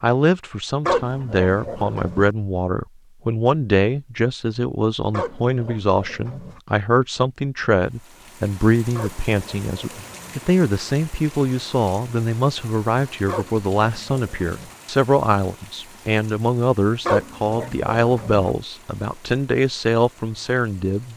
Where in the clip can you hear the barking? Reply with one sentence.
You can hear the barking from 0.8 to 2.3 s, from 5.1 to 6.6 s, from 8.9 to 10.4 s, from 13.2 to 14.8 s and from 17.1 to 18.5 s.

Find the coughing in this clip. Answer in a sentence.
The coughing can't be heard in this clip.